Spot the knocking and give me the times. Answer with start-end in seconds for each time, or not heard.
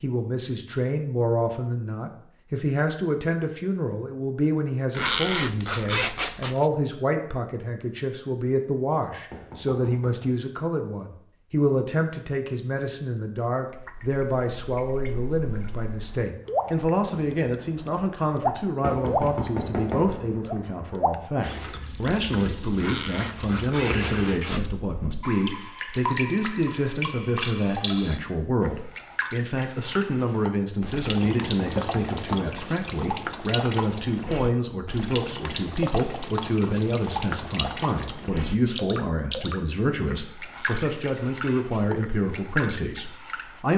9.2-10.3, 18.8-20.4, 31.2-32.5.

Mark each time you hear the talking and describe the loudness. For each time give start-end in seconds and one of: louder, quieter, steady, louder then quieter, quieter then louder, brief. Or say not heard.
0.0-43.7 steady.